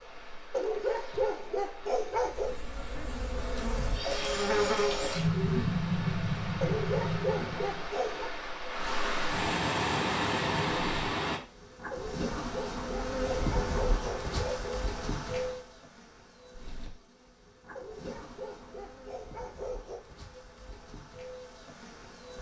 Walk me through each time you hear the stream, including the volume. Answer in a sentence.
You can hear the stream from 0.0 to 11.4 s, getting louder.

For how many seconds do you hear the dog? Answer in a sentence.
The dog can be heard for 9 seconds in total.